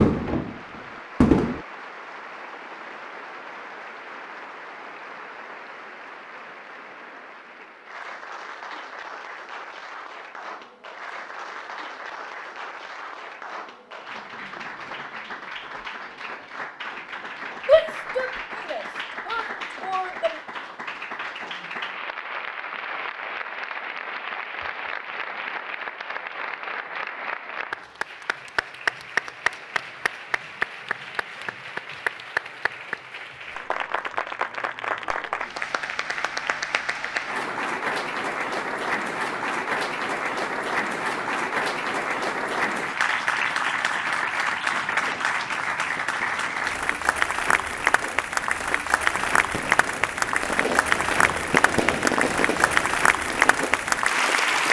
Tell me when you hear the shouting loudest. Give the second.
18 s.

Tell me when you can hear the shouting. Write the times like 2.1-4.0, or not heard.
17.6-20.4.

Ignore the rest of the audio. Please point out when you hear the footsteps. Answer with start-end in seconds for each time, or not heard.
not heard.